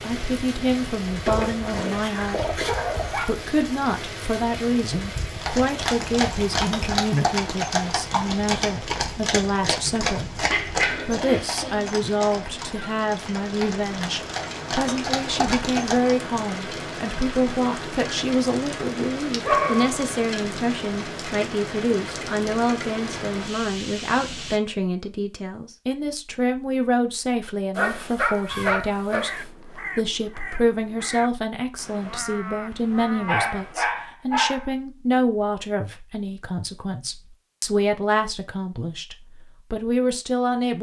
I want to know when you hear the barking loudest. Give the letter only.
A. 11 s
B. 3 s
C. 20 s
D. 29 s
C.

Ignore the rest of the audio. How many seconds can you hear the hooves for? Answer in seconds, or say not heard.
11 s.